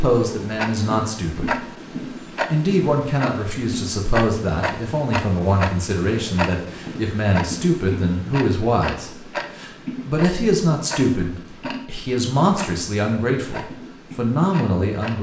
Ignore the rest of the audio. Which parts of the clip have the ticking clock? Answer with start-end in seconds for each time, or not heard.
0.0-15.1.